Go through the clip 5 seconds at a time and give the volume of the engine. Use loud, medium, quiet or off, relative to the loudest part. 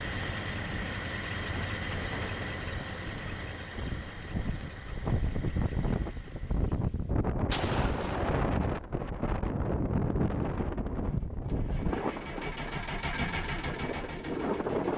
loud, quiet, loud.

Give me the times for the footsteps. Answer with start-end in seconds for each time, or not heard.
not heard.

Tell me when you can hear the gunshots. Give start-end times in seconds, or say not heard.
7.5-9.1.